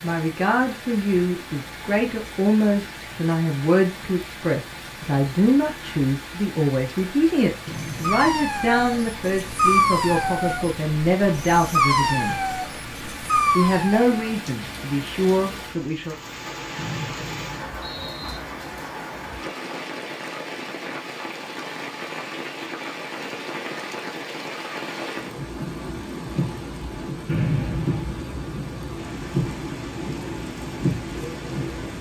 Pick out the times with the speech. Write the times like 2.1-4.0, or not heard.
0.0-12.4, 13.6-16.1.